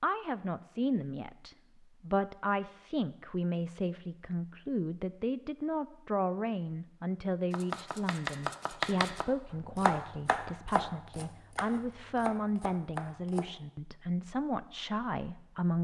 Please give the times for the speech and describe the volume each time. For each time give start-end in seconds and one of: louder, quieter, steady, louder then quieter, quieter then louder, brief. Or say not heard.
0.0-15.7 steady.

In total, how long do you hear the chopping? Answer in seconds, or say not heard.
6 s.